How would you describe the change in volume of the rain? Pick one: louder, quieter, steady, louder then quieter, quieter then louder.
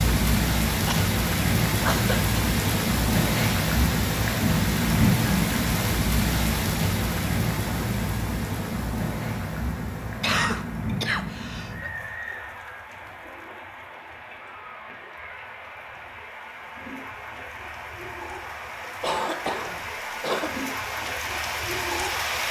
quieter then louder.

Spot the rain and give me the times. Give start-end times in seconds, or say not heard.
0.0-22.4.